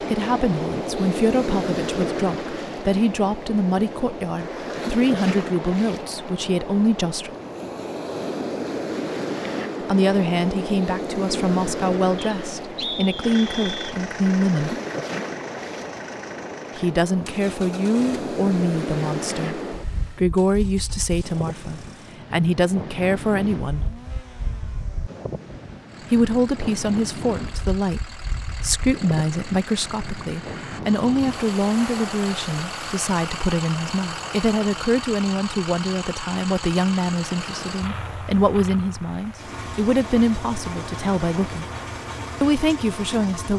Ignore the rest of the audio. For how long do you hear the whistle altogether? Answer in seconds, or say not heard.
2 s.